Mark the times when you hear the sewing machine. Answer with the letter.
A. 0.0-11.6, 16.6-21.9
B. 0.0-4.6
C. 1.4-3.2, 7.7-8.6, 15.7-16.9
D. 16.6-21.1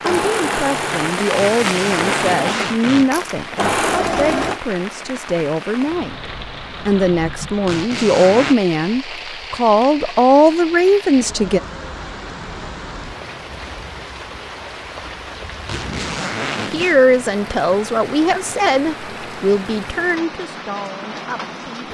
B.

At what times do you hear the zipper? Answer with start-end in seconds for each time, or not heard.
1.4-3.2, 7.7-8.6, 15.7-16.9.